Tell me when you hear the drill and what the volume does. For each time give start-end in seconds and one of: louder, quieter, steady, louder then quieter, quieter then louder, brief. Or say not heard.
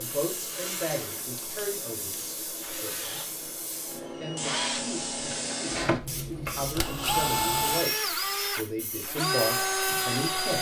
0.0-10.5 louder.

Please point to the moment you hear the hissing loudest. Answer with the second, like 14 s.
5 s.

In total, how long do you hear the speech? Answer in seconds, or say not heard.
10 s.